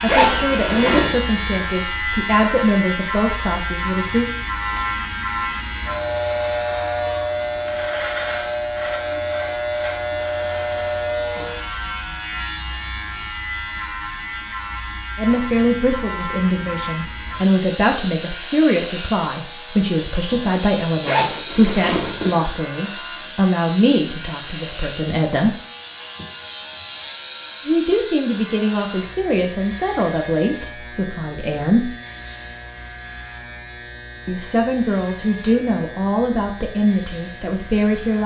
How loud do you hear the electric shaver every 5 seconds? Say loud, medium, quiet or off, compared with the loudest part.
loud, loud, loud, medium, medium, medium, quiet, quiet.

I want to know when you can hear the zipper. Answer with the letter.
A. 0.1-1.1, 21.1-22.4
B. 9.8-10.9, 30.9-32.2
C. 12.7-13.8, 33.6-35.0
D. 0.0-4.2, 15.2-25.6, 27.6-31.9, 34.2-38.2
A.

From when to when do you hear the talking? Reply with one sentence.
You can hear the talking from 0.0 to 4.2 s, from 15.2 to 25.6 s, from 27.6 to 31.9 s and from 34.2 to 38.2 s.